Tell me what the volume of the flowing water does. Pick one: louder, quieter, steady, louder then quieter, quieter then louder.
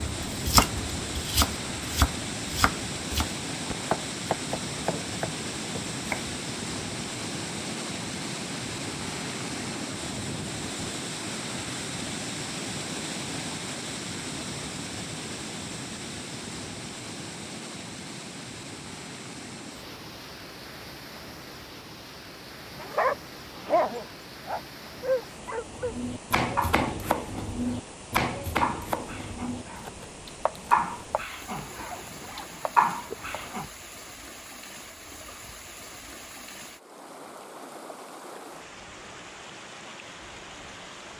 quieter.